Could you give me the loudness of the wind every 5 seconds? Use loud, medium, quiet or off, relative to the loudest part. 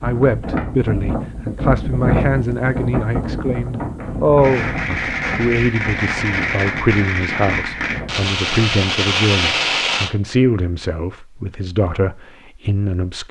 loud, medium, off.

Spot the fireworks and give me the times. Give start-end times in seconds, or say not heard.
4.3-10.1.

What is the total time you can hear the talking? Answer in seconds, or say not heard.
13 s.